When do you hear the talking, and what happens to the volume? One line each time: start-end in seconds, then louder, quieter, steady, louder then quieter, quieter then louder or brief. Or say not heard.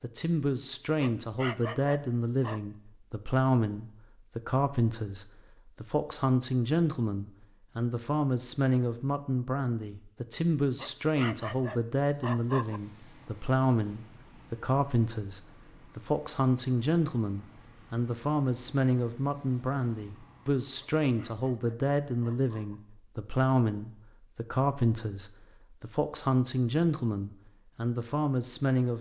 0.0-28.9 steady.